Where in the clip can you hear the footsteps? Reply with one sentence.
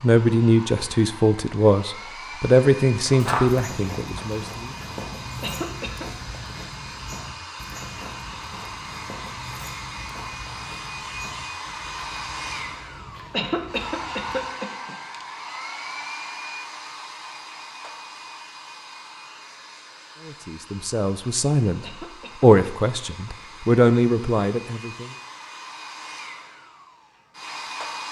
You can hear the footsteps from 3.0 to 14.4 s.